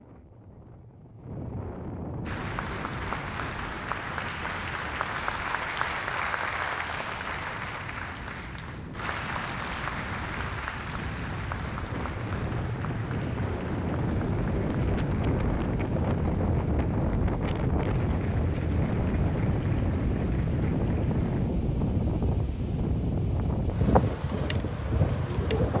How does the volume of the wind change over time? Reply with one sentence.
The volume of the wind goes up.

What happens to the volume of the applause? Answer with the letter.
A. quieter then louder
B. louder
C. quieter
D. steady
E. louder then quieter
C.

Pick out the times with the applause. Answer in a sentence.
The applause can be heard from 2.2 to 21.5 s.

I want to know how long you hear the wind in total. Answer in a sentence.
The wind can be heard for 26 seconds in total.